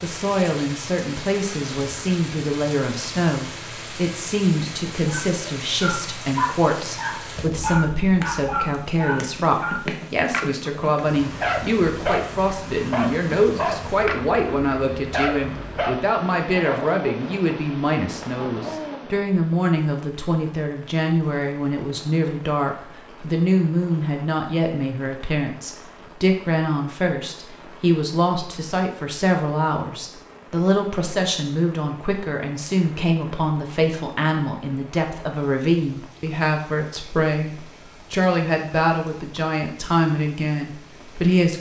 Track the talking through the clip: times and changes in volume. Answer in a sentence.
The talking can be heard from 0.0 to 41.5 s, at a steady volume.